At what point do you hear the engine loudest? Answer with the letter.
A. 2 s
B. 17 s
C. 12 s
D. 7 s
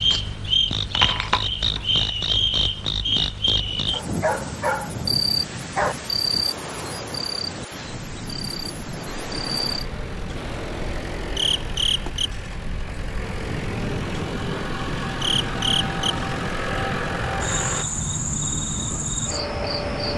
B.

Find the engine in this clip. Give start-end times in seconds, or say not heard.
9.7-17.9.